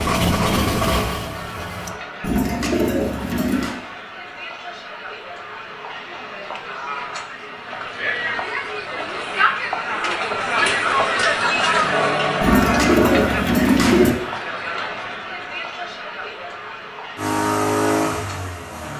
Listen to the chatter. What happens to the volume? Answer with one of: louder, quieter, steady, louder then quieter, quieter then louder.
louder then quieter.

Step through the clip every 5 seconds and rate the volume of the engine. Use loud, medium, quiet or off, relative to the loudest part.
loud, off, off, loud.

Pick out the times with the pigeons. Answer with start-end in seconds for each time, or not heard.
2.2-3.8, 12.4-14.1.